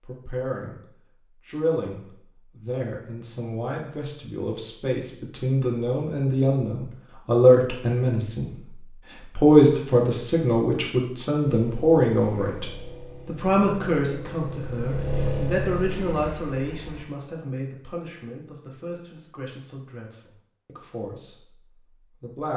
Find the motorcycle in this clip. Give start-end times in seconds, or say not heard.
11.7-17.1.